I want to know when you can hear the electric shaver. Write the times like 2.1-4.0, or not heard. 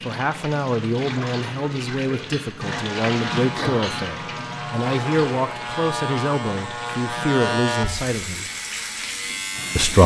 2.6-10.0.